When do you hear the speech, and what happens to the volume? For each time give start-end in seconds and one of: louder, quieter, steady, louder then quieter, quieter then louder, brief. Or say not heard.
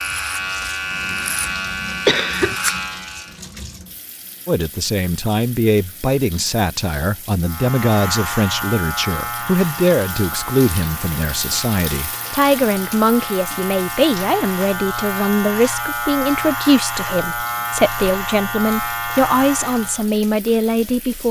4.5-21.2 steady.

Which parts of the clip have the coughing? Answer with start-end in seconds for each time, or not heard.
0.6-2.5.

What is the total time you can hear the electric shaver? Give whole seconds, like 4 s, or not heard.
16 s.